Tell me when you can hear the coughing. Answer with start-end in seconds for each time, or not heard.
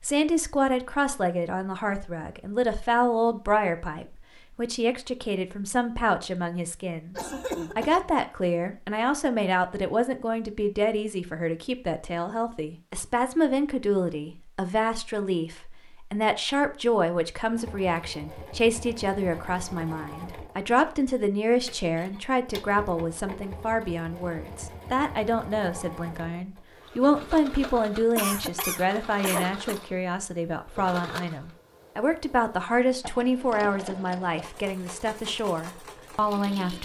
7.2-8.1, 28.1-29.8.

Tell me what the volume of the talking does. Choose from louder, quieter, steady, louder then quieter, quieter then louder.
steady.